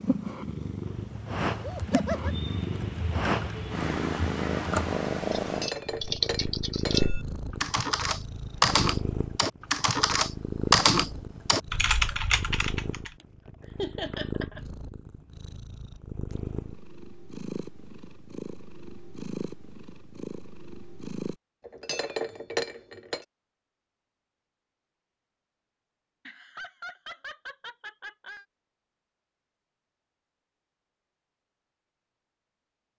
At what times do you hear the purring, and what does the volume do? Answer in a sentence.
You can hear the purring from 0.0 to 21.4 s, getting quieter.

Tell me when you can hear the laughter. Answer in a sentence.
The laughter can be heard from 1.6 to 2.4 s, from 13.8 to 14.6 s and from 26.2 to 28.4 s.